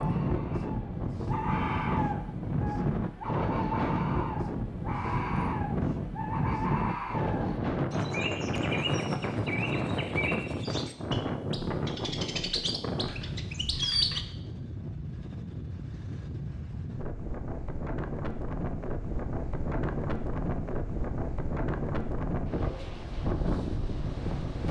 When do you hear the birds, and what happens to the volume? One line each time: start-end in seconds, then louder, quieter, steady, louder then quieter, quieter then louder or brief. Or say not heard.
0.0-14.2 steady.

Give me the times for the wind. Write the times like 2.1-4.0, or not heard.
0.0-24.6.